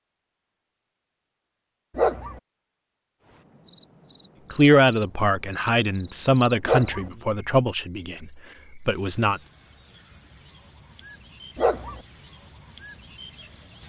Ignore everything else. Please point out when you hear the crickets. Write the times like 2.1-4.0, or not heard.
3.2-13.8.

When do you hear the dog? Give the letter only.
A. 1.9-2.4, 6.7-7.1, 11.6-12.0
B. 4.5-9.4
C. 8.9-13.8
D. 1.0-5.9
A.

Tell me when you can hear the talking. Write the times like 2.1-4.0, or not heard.
4.5-9.4.